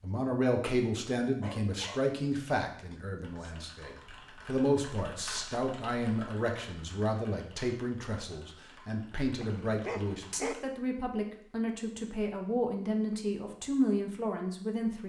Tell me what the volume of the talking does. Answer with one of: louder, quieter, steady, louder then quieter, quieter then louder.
steady.